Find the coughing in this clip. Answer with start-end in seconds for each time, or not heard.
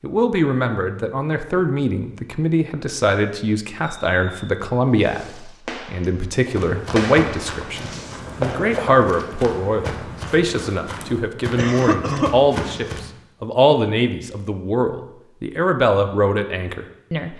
11.6-12.9.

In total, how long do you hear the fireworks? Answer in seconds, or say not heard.
5 s.